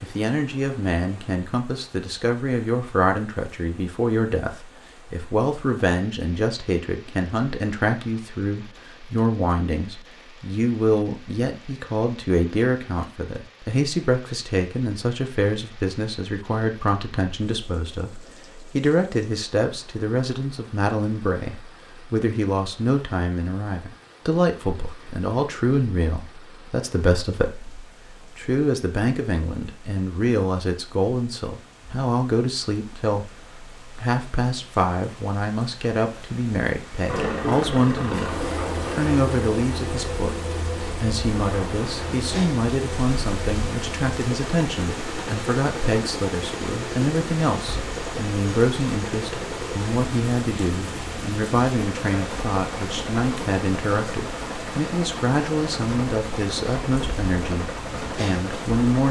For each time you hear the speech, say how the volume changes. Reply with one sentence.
The speech can be heard from 0.0 to 59.0 s, at a steady volume.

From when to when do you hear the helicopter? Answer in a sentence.
You can hear the helicopter from 37.0 to 59.0 s.